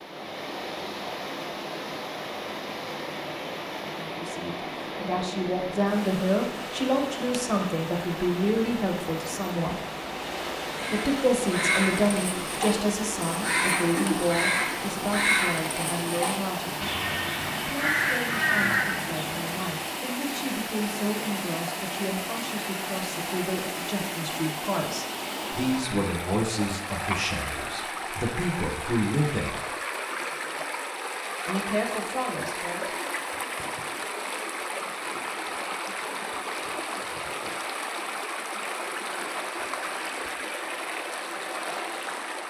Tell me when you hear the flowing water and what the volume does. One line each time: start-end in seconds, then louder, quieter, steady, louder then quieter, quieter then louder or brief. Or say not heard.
0.0-42.4 steady.